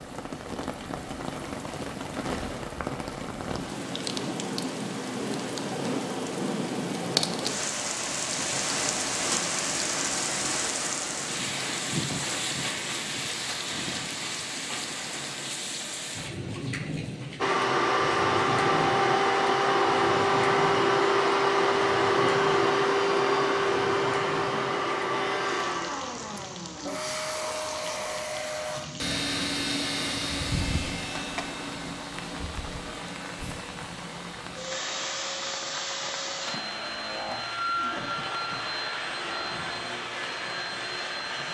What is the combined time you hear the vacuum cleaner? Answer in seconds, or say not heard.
24 s.